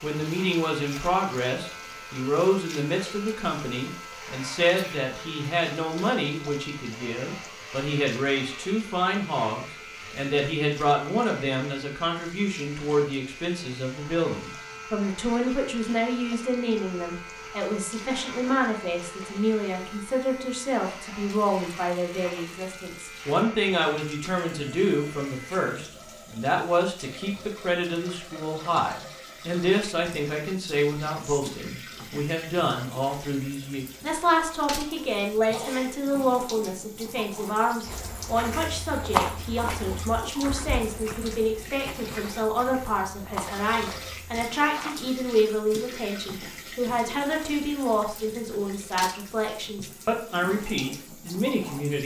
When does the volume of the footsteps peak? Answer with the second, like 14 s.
39 s.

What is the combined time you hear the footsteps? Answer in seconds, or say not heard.
7 s.